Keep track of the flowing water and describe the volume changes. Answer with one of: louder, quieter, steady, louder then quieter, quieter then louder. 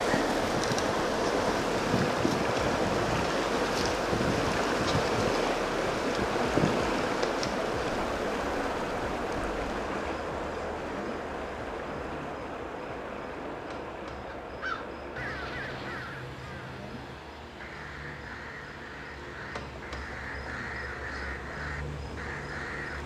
quieter.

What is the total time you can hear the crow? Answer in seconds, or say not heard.
9 s.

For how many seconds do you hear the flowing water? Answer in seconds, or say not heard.
23 s.